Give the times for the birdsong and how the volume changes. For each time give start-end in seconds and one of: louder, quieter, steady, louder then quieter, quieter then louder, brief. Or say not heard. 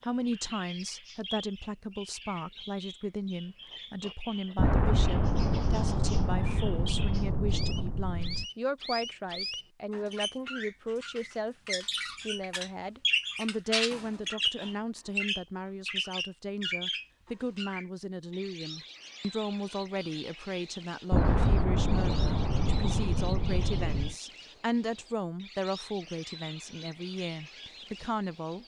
0.0-28.6 louder then quieter.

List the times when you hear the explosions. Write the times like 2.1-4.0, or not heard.
4.5-8.4, 21.1-24.1.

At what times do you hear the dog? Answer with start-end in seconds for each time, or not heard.
not heard.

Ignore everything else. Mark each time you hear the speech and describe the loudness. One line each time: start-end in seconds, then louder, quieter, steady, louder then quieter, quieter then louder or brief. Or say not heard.
0.0-28.6 steady.